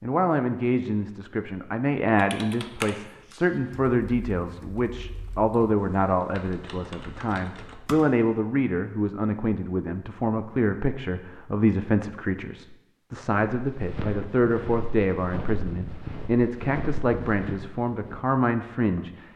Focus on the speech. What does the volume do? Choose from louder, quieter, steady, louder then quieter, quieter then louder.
steady.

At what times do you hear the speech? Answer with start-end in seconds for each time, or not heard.
0.0-19.2.